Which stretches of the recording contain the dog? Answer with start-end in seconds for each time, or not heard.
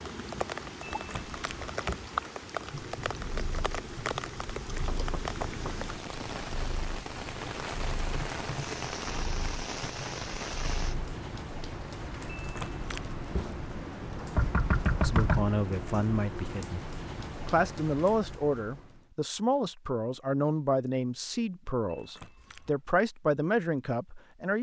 not heard.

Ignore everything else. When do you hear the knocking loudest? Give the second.
15 s.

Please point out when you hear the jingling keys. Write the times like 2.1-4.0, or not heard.
0.9-2.0, 12.3-13.6, 21.9-22.9.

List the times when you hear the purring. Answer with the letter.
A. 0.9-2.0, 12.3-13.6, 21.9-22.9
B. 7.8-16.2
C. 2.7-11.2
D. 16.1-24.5
C.